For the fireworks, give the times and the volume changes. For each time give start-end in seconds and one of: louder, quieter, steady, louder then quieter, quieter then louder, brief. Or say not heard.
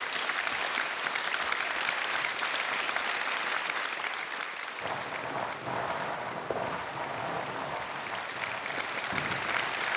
4.8-9.9 quieter.